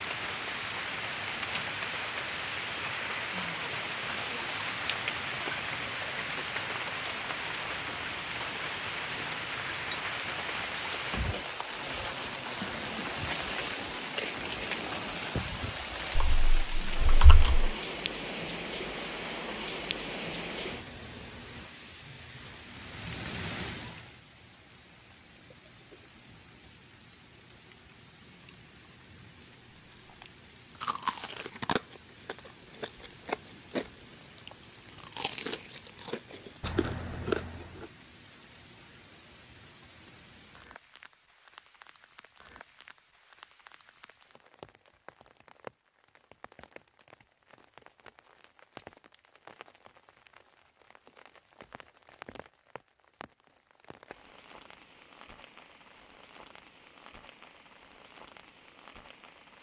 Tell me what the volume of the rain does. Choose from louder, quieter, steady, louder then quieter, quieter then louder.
quieter.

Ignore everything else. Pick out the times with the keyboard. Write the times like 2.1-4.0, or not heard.
16.1-17.7.